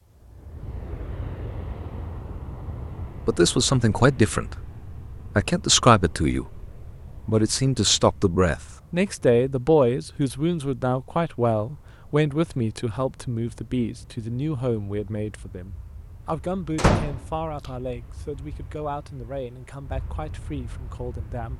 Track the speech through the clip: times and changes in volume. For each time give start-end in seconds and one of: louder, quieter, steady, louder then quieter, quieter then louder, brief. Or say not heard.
3.2-21.5 quieter.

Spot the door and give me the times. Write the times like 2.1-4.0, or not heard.
16.8-17.2.